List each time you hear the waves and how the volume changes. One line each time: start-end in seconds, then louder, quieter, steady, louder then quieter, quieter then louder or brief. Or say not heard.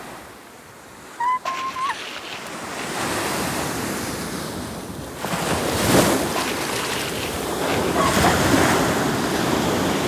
0.0-10.0 louder.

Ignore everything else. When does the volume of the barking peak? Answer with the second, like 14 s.
8 s.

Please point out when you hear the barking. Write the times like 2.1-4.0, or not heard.
1.4-3.0, 6.3-8.3.